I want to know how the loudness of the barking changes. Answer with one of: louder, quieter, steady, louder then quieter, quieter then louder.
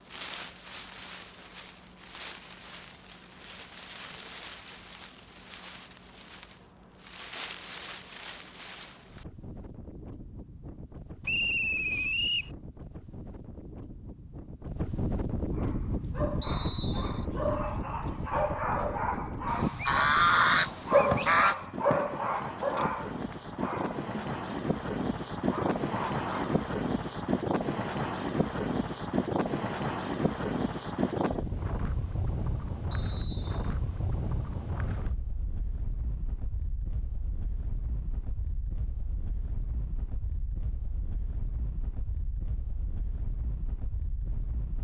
louder then quieter.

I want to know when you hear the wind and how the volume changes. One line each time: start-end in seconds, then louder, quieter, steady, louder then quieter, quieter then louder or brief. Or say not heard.
0.0-44.7 louder then quieter.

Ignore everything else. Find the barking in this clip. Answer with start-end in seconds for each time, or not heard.
15.5-26.6.